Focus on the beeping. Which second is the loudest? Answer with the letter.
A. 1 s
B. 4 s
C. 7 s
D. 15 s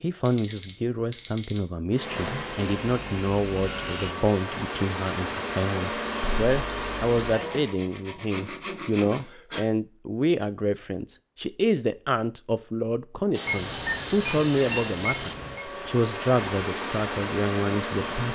A.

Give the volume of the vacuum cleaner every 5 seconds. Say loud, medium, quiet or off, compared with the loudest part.
loud, loud, off, loud.